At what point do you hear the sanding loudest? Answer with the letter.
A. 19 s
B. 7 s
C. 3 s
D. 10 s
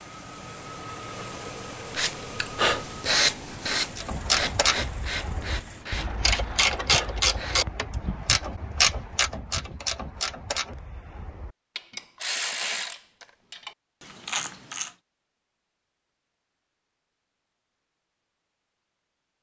C.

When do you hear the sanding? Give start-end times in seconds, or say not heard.
1.9-7.6.